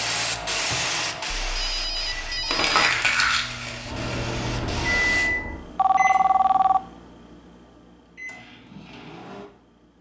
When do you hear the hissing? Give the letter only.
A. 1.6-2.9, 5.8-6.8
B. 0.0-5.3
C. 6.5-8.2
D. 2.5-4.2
B.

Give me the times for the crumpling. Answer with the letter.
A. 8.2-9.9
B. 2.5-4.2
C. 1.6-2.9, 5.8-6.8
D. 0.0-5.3
B.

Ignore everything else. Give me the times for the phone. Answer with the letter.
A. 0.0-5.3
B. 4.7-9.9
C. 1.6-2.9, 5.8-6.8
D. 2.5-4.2
C.